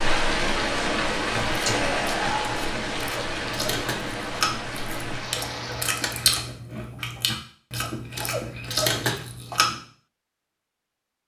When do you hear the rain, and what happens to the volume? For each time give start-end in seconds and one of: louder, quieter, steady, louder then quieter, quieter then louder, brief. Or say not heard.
0.0-6.2 quieter.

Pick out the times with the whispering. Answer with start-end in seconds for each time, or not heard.
1.6-2.6.